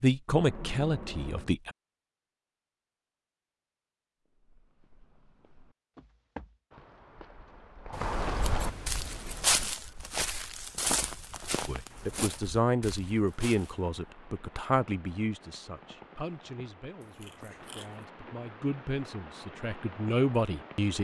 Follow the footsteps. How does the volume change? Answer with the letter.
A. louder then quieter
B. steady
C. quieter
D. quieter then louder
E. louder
A.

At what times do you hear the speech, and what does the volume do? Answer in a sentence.
You can hear the speech briefly from 0.0 to 1.7 s; and from 11.7 to 20.9 s, getting quieter then louder.